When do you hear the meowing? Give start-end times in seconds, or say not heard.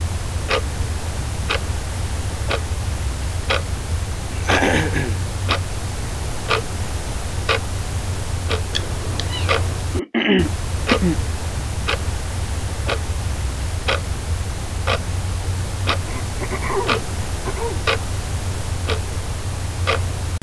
8.7-9.8.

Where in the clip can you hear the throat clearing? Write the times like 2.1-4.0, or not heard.
4.3-5.2, 9.9-11.2, 16.1-17.8.